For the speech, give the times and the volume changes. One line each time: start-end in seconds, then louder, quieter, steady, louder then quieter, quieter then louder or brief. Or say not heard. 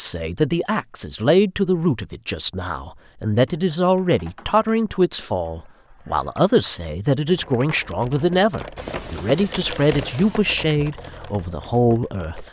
0.0-12.4 steady.